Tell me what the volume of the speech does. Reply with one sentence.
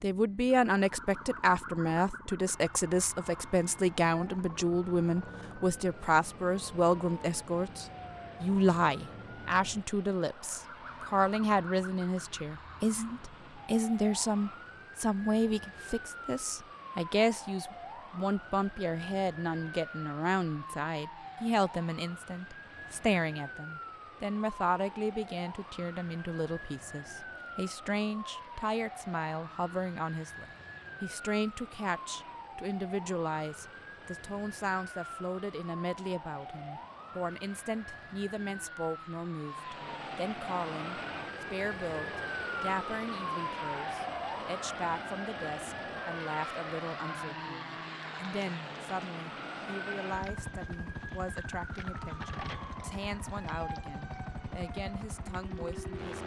The volume of the speech goes down.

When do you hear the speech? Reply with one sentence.
You can hear the speech from 0.0 to 56.2 s.